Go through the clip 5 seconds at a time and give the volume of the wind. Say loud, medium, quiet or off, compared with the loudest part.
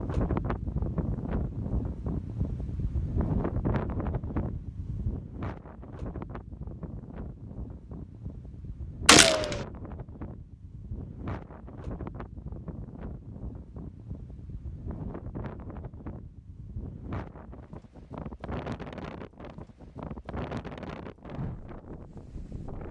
loud, medium, medium, medium, medium.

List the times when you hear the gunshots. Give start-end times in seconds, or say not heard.
9.1-9.7.